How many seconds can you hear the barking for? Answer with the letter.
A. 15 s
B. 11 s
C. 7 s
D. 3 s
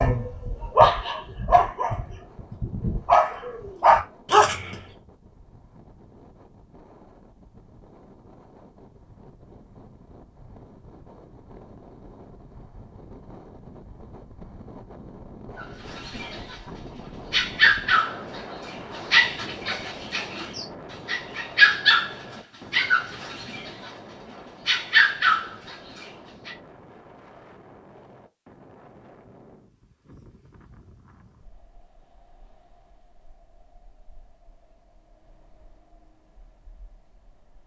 A.